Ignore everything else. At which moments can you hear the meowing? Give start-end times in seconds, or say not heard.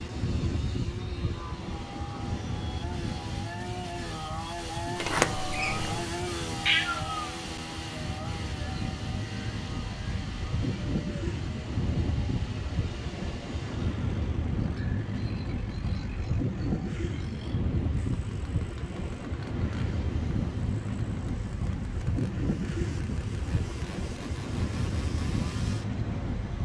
6.7-7.3.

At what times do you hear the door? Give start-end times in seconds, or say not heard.
5.0-6.0.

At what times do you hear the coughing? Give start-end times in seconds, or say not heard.
not heard.